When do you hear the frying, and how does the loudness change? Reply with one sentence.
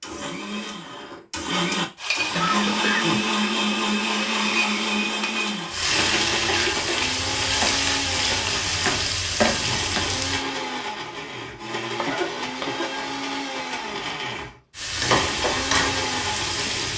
You can hear the frying from 1.9 to 10.4 s, getting louder; and briefly from 14.8 to 16.9 s.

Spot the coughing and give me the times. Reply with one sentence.
The coughing can be heard from 2.4 to 3.2 s, from 6.5 to 7.0 s and from 11.9 to 12.9 s.